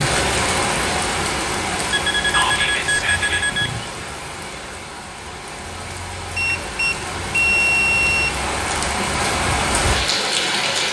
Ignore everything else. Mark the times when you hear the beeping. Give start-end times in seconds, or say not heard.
1.9-3.9, 6.3-8.3.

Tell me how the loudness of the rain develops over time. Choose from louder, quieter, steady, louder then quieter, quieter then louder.
quieter then louder.